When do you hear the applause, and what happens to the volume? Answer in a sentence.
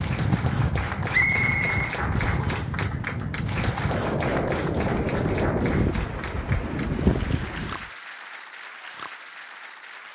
You can hear the applause from 0.0 to 10.0 s, getting quieter.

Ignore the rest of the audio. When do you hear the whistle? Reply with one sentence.
You can hear the whistle from 1.1 to 2.7 s.